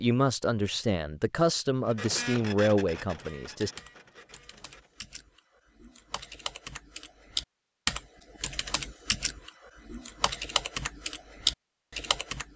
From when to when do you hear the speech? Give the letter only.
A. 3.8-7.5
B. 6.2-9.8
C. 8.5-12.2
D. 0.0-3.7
D.